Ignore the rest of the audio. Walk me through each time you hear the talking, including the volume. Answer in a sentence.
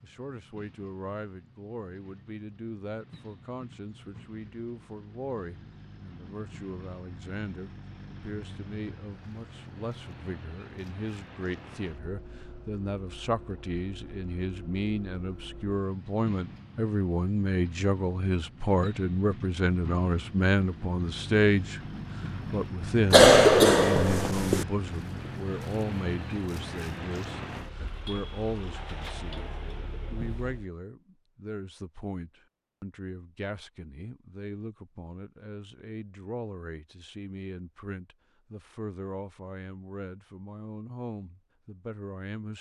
The talking can be heard from 0.0 to 42.5 s, getting louder then quieter.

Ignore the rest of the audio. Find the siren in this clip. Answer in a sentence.
You can't hear the siren here.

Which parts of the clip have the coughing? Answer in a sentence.
You can hear the coughing from 23.1 to 24.6 s.